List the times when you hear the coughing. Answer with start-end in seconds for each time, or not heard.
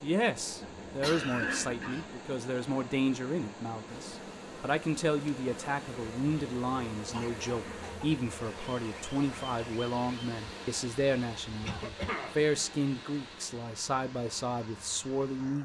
0.6-2.0, 7.1-8.2, 11.6-12.3.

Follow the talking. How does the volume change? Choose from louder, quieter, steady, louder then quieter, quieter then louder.
steady.